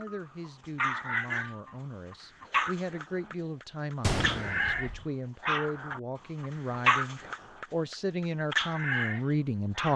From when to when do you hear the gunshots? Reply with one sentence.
The gunshots can be heard from 4.0 to 5.0 s.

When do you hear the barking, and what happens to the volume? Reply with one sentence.
You can hear the barking from 0.0 to 9.9 s, at a steady volume.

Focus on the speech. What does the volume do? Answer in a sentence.
The loudness of the speech goes up.